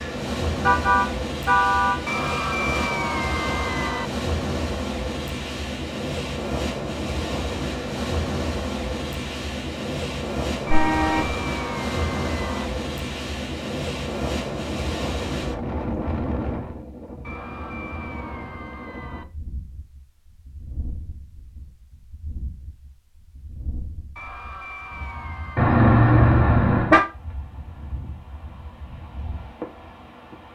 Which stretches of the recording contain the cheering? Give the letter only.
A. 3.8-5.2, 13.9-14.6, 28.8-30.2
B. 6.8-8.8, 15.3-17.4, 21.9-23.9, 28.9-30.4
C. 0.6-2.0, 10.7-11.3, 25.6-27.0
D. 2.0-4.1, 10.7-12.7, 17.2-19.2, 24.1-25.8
D.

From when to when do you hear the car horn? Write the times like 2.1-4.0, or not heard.
0.6-2.0, 10.7-11.3, 25.6-27.0.